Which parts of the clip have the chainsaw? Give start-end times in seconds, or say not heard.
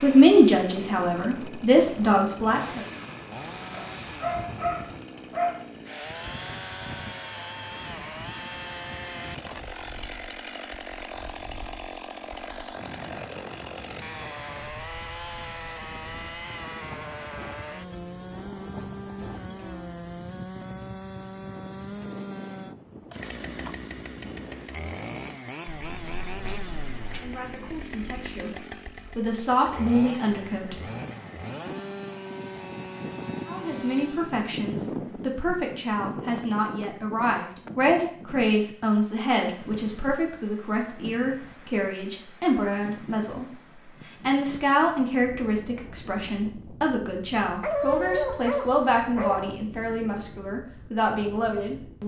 0.0-34.5.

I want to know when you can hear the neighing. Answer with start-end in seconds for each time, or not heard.
not heard.